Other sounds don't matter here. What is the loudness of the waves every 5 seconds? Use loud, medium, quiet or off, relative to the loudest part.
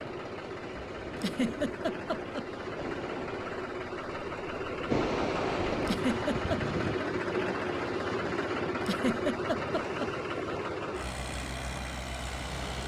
loud, loud, medium.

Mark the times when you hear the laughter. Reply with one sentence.
You can hear the laughter from 1.1 to 2.5 s, from 5.8 to 6.6 s and from 8.8 to 10.1 s.